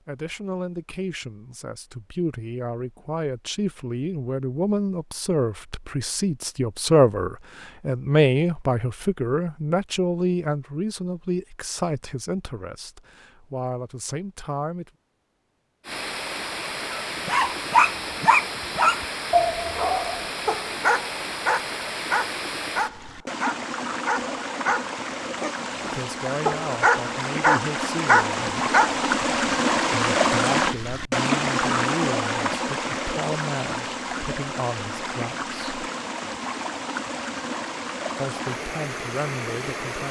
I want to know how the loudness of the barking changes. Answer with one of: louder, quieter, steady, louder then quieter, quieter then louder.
quieter then louder.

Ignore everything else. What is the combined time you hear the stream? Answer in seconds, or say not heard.
24 s.